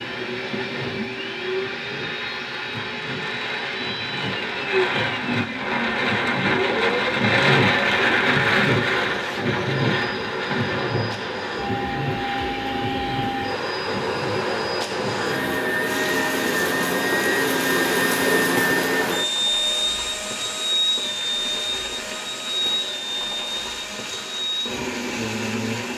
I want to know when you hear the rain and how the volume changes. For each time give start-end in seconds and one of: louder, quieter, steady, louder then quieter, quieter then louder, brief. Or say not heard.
0.0-25.9 louder then quieter.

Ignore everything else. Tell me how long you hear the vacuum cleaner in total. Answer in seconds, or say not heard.
26 s.